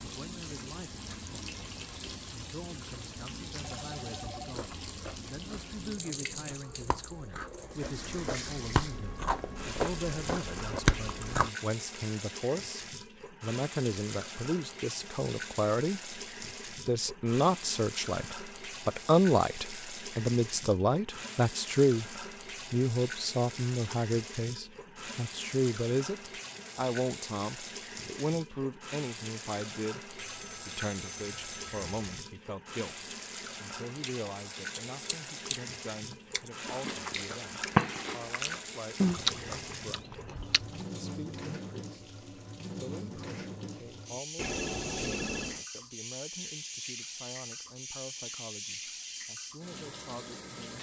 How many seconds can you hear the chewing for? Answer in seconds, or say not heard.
14 s.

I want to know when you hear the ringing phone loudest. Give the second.
45 s.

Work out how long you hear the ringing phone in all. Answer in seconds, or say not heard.
4 s.